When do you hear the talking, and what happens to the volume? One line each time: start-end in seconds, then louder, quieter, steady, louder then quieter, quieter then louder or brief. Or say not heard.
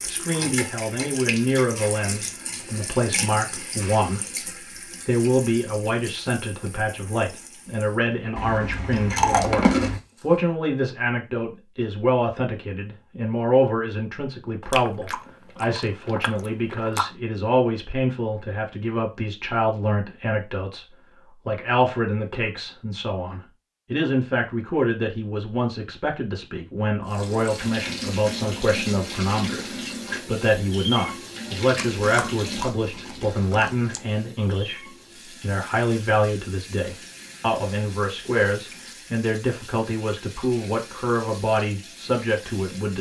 0.1-42.9 steady.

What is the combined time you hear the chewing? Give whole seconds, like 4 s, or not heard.
6 s.